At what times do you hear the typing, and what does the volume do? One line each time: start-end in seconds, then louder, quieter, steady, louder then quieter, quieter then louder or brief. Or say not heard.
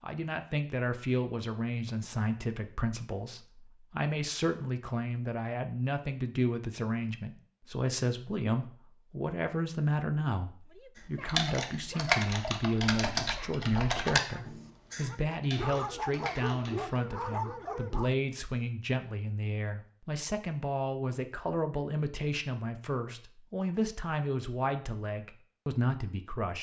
11.2-16.9 quieter.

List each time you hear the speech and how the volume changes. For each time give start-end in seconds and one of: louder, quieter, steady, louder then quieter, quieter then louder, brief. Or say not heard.
0.0-26.5 steady.